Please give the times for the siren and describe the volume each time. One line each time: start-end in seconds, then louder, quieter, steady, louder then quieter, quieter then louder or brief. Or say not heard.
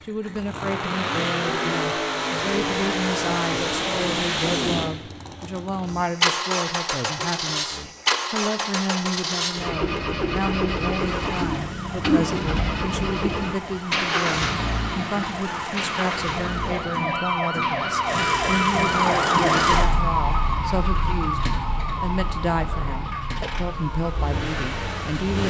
10.9-25.3 louder then quieter.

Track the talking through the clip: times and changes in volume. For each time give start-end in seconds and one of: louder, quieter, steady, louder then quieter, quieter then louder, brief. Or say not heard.
0.0-25.4 steady.